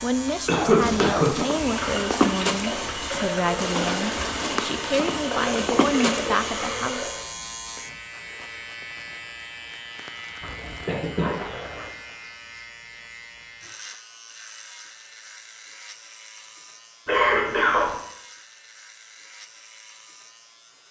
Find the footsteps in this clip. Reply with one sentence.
The footsteps can be heard from 0.8 to 6.7 s.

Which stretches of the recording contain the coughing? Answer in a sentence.
You can hear the coughing from 0.5 to 1.3 s, from 10.4 to 11.9 s and from 17.1 to 17.9 s.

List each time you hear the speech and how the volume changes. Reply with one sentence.
The speech can be heard from 0.0 to 7.2 s, at a steady volume.